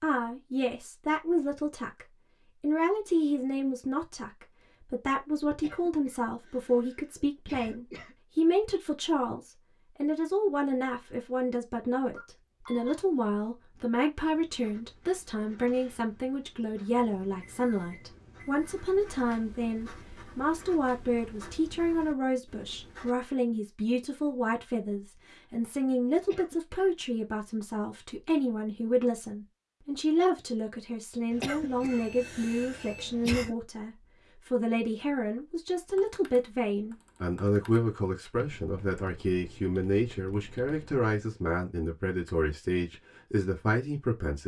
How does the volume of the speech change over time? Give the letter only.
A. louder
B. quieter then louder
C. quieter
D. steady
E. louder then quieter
D.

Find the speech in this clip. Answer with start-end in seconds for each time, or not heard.
0.0-44.4.